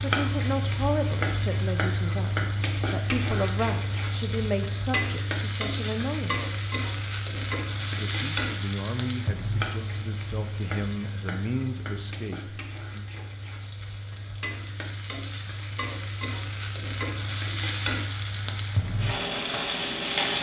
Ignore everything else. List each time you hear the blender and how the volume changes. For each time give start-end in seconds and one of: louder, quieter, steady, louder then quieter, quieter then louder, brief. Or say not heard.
not heard.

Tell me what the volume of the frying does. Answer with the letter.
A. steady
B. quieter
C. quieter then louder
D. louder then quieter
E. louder
C.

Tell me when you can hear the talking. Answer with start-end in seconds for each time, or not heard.
0.0-6.5, 7.9-13.1.